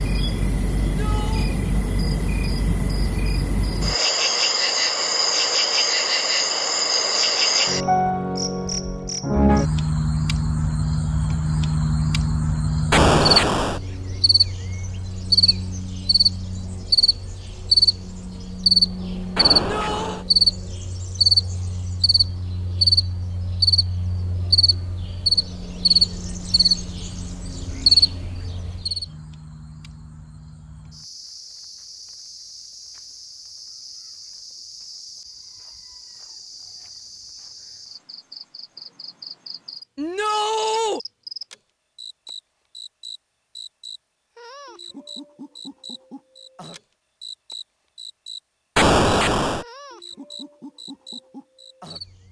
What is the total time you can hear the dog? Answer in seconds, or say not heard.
not heard.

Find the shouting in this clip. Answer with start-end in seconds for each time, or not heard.
0.8-1.5, 19.5-20.2, 40.0-41.0.